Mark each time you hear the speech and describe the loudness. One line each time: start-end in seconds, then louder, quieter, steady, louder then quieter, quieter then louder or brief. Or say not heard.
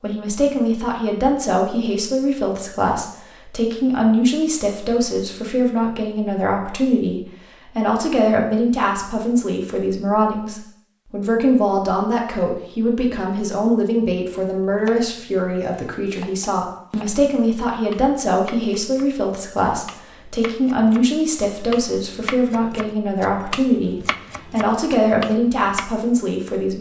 0.0-26.7 steady.